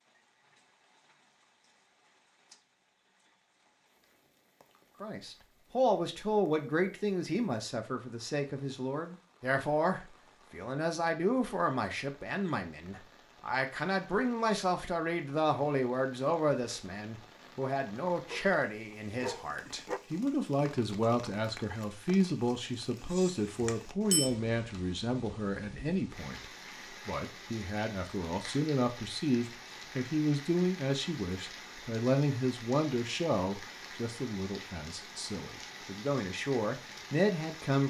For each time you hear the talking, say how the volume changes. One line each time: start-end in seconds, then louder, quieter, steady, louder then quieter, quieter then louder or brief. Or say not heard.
5.0-37.8 steady.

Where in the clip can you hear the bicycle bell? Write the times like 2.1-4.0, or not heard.
23.6-24.3.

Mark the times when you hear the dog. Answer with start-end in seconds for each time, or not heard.
18.3-20.0.